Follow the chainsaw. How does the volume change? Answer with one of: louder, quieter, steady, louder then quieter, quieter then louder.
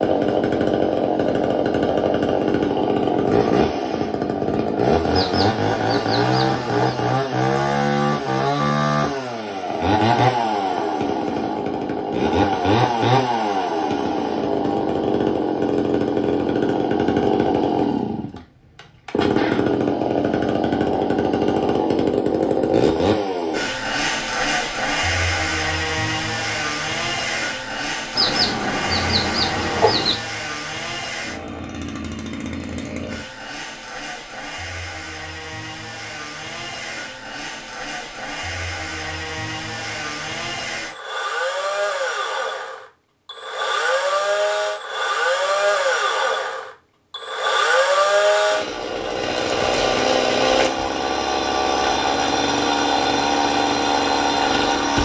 quieter then louder.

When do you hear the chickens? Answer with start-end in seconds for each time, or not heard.
5.1-7.0, 28.1-30.1.